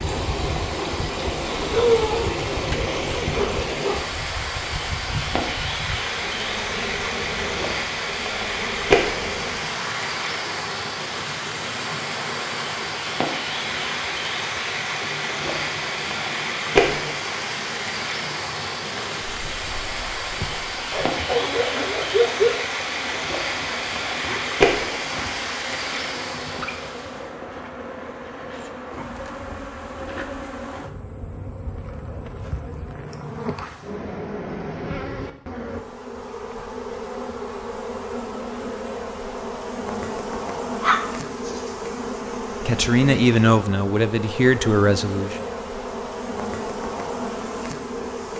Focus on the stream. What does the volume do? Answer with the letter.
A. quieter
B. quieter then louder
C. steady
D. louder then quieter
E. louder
C.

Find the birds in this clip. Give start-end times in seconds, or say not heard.
not heard.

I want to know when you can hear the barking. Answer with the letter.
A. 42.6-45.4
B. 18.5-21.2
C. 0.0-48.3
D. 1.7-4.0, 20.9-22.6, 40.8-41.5
D.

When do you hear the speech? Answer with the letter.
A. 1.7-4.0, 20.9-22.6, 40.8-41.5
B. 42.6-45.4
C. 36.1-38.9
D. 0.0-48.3
B.